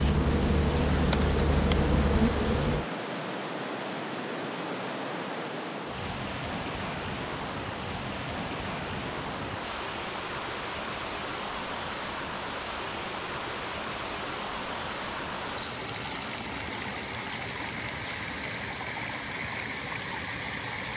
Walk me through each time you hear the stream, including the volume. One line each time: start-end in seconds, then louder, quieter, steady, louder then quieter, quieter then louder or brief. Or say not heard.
0.0-20.9 steady.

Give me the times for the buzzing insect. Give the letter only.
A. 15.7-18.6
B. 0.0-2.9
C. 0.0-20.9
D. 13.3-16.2
B.